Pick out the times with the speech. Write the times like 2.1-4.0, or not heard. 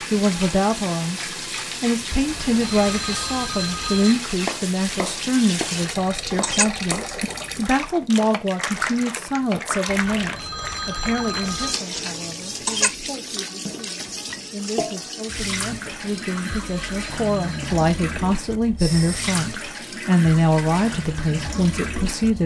0.1-22.4.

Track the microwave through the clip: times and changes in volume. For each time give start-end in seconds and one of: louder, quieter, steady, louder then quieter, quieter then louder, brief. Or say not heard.
not heard.